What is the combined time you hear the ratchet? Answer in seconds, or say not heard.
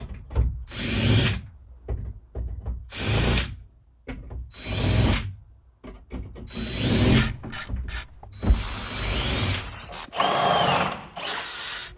3 s.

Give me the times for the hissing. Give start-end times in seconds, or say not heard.
8.5-11.9.